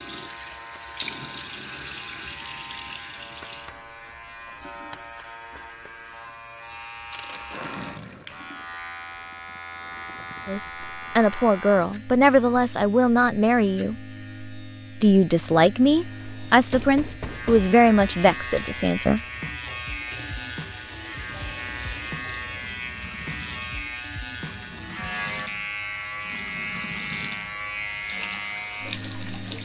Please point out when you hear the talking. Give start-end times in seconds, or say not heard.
10.4-13.9, 15.0-19.2.